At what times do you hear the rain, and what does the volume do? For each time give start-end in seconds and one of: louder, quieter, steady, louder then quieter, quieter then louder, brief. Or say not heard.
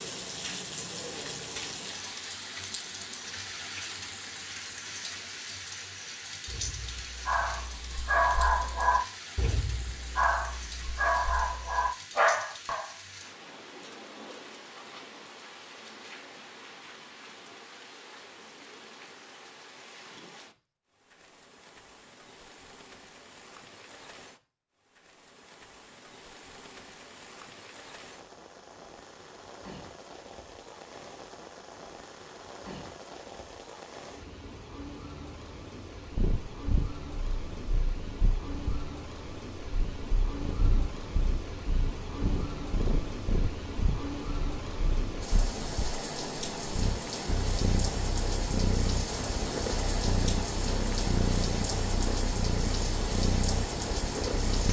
0.0-54.6 quieter then louder.